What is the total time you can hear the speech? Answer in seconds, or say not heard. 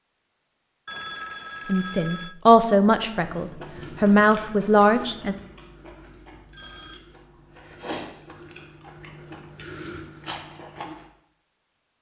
4 s.